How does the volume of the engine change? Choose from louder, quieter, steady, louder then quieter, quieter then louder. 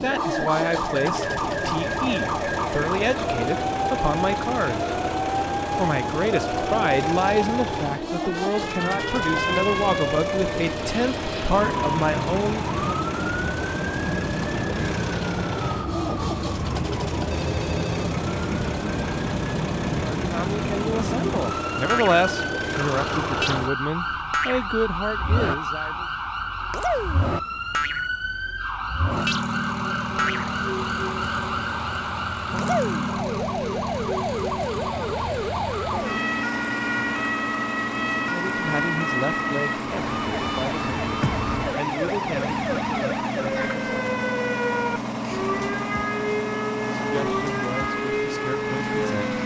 steady.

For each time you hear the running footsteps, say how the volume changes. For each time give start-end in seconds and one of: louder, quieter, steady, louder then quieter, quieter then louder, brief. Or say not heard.
not heard.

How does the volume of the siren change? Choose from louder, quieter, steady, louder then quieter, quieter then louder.
steady.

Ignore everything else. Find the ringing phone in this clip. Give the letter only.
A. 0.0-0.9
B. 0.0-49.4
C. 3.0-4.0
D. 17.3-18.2
D.